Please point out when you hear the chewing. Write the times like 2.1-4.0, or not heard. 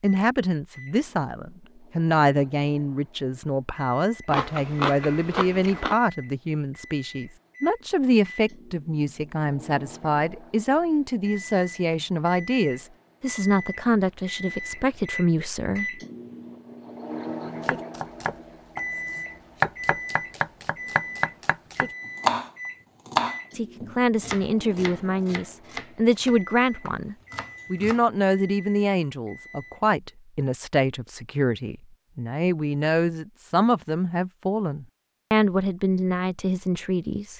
4.3-6.0.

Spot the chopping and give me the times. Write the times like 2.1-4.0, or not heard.
17.6-28.1.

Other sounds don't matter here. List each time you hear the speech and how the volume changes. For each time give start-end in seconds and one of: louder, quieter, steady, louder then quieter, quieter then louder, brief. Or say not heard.
0.0-16.0 steady
23.5-37.3 steady.